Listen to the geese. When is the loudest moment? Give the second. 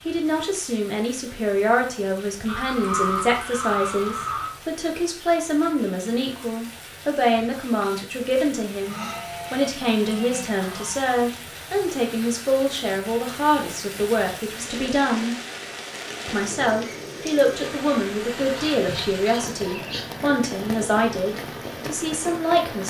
3 s.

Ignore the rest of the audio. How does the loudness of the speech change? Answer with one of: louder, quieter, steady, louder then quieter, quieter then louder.
steady.